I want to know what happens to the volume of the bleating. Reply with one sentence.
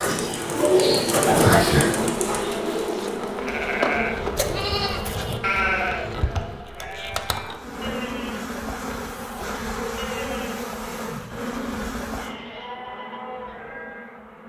The loudness of the bleating goes down.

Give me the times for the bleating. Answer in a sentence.
You can hear the bleating from 3.4 to 14.2 s.